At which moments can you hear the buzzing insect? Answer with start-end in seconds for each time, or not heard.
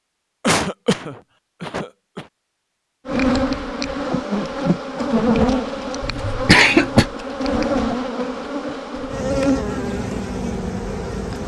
3.0-11.4.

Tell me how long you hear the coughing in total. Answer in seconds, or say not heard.
3 s.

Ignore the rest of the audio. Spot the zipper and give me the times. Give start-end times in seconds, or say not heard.
not heard.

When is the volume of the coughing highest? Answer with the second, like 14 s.
7 s.